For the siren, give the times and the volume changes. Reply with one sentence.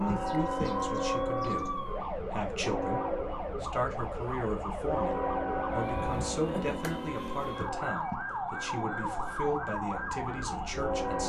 The siren can be heard from 0.0 to 11.2 s, at a steady volume.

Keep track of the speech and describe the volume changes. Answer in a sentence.
The volume of the speech stays about the same.